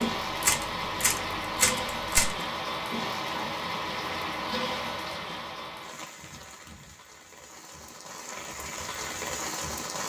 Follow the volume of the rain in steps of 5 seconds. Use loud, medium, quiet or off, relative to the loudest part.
loud, medium.